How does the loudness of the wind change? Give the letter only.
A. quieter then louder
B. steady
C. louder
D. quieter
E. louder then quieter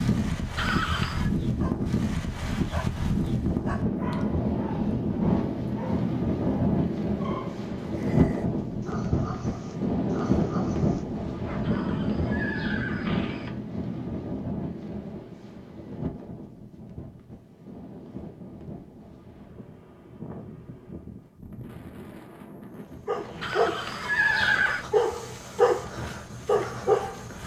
D.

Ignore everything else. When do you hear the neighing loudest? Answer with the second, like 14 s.
24 s.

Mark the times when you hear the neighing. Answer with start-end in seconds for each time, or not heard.
0.6-1.3, 11.6-13.5, 23.4-24.9.